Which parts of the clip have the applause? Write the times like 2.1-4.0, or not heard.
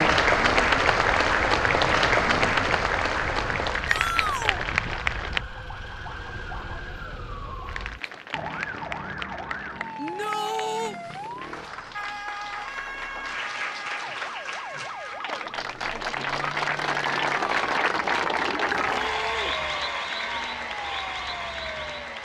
0.0-5.4, 7.7-22.2.